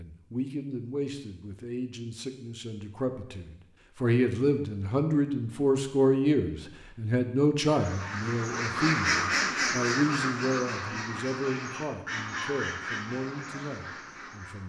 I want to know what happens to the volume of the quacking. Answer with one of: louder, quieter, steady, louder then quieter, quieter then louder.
quieter.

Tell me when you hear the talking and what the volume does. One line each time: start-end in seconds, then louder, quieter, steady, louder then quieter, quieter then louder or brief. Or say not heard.
0.0-14.6 louder then quieter.